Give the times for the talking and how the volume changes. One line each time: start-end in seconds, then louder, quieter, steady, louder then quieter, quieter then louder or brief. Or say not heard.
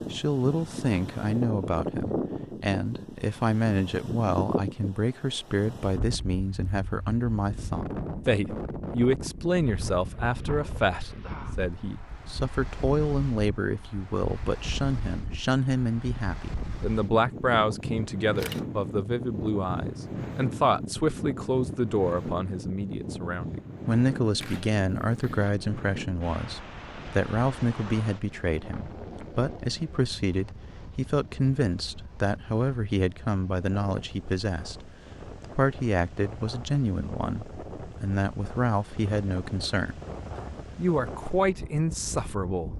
0.1-40.0 steady
40.8-42.7 brief.